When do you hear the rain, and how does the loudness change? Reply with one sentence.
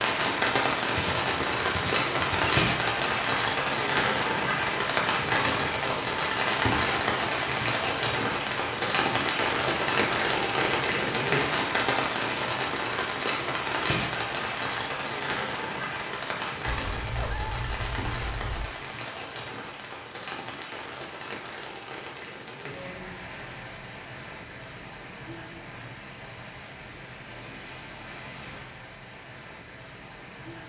The rain can be heard from 0.0 to 30.6 s, getting quieter.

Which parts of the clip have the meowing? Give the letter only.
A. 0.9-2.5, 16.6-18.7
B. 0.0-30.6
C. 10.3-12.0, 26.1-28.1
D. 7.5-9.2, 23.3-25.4
A.